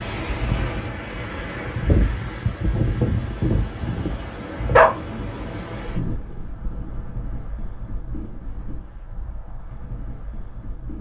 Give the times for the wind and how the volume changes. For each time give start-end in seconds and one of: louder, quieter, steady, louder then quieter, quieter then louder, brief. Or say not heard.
0.0-10.9 quieter.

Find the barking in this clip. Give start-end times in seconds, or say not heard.
3.5-4.9.